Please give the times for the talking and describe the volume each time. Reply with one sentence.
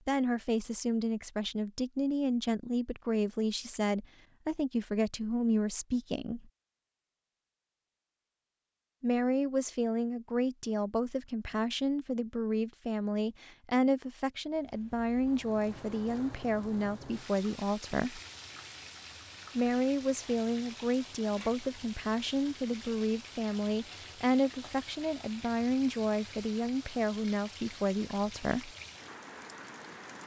You can hear the talking from 0.1 to 6.5 s, at a steady volume; from 9.0 to 18.2 s, at a steady volume; and from 19.6 to 28.7 s, at a steady volume.